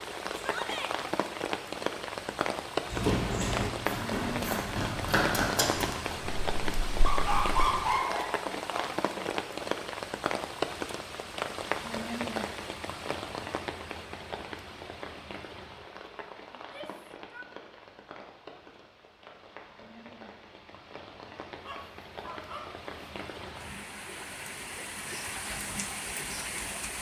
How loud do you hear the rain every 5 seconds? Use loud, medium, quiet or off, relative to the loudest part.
loud, loud, loud, quiet, medium, loud.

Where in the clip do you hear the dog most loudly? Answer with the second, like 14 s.
8 s.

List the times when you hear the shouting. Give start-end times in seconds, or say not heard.
0.3-0.9, 16.6-17.4.